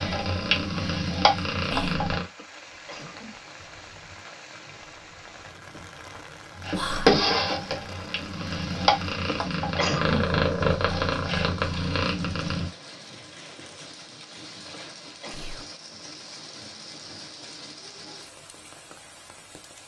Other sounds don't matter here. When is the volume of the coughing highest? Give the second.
10 s.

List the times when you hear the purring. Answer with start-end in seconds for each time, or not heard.
0.0-2.2, 6.5-12.7.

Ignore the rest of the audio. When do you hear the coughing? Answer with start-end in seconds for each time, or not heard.
2.4-3.6, 9.2-10.2, 14.7-15.4.